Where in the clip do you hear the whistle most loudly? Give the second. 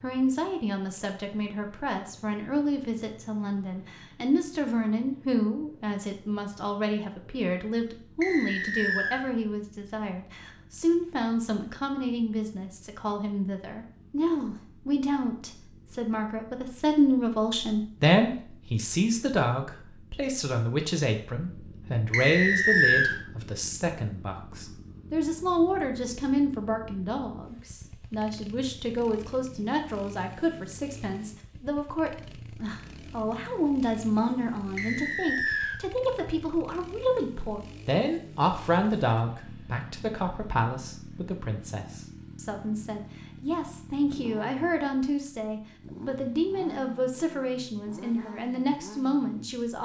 23 s.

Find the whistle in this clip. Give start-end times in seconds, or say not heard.
8.2-9.2, 22.1-23.1, 34.8-35.8.